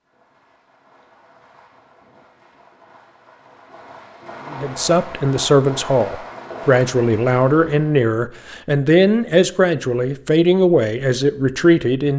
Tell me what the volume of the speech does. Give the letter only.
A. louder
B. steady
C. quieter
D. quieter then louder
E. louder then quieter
B.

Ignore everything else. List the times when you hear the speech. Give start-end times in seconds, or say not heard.
4.5-12.1.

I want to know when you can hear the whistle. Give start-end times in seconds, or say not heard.
not heard.